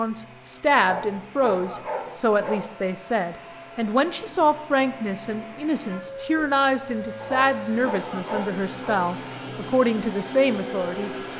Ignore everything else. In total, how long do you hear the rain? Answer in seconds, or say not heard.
not heard.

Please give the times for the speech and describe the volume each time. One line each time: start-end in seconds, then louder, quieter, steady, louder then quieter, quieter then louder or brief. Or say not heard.
0.0-11.1 steady.